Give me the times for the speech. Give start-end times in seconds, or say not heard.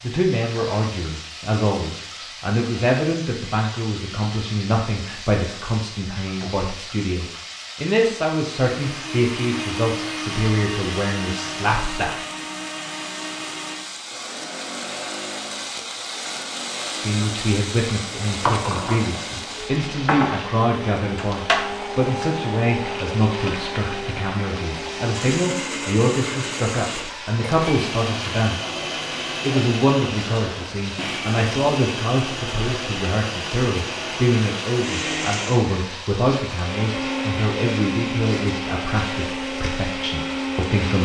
0.0-12.2, 16.9-28.7, 29.4-41.0.